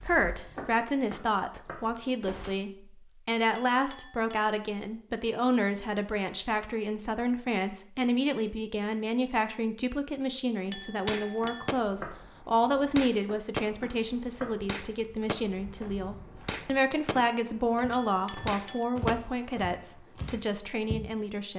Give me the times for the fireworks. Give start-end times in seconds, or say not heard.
10.8-20.4.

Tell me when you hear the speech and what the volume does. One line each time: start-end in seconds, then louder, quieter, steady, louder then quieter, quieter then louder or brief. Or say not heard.
0.1-21.5 steady.